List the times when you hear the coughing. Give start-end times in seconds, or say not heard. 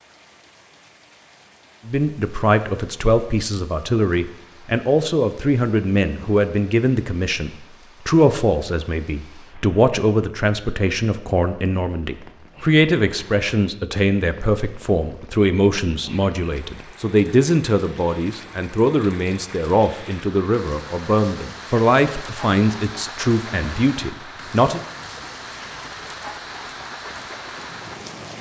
not heard.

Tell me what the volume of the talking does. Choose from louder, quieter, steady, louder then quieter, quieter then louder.
steady.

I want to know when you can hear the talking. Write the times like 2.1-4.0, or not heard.
1.9-24.8.